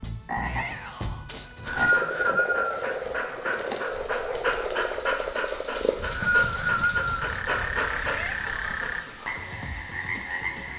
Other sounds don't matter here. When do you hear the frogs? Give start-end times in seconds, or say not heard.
0.0-10.7.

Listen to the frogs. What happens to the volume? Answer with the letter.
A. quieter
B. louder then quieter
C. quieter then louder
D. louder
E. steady
E.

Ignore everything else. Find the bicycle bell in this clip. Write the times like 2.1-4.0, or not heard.
not heard.